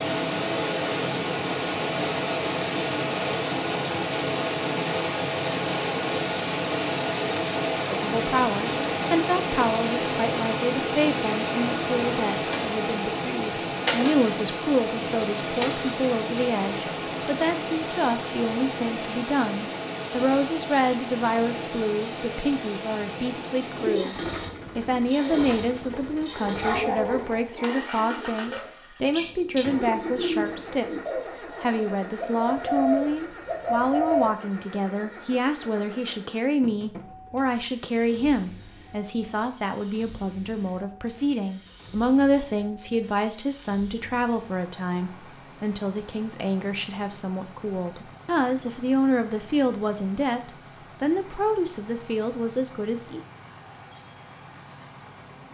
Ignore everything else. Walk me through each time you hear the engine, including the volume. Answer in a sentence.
You can hear the engine from 0.0 to 55.4 s, getting quieter.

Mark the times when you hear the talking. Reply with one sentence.
The talking can be heard from 7.9 to 53.2 s.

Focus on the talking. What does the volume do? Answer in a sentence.
The loudness of the talking stays about the same.